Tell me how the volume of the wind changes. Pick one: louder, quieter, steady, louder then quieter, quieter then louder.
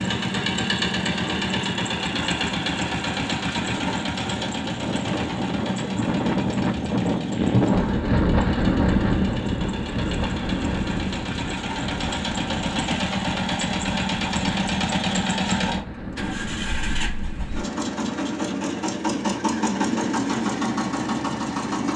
louder then quieter.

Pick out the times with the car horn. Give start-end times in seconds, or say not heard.
not heard.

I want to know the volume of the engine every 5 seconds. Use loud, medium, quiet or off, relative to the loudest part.
loud, medium, loud, loud, loud.